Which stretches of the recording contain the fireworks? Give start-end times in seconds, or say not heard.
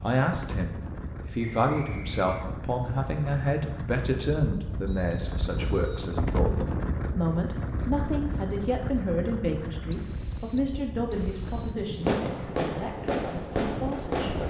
12.0-14.4.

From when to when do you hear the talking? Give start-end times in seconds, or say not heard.
0.0-14.4.